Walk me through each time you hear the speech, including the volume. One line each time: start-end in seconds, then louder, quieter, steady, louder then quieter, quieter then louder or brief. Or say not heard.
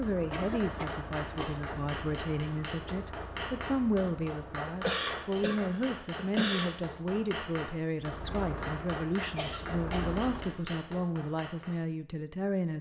0.0-12.7 steady.